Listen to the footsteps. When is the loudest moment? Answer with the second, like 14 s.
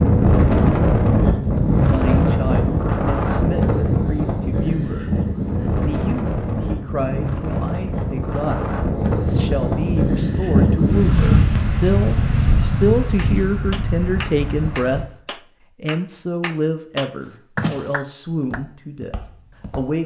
18 s.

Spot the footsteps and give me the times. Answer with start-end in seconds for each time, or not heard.
17.6-19.9.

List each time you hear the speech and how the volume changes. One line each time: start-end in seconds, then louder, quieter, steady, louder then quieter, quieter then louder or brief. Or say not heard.
1.7-15.0 louder
15.8-20.0 quieter.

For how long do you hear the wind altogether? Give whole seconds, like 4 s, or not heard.
15 s.